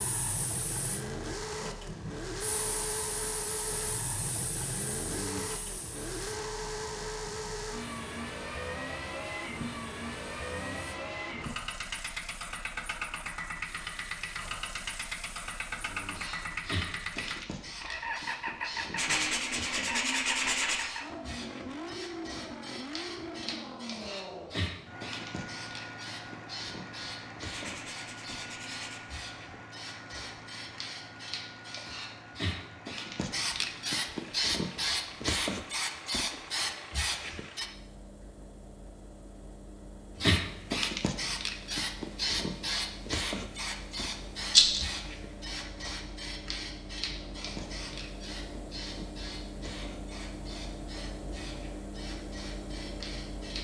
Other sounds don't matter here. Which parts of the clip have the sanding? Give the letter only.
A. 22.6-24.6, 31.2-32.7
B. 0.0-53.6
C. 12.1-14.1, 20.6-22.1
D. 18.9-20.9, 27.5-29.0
D.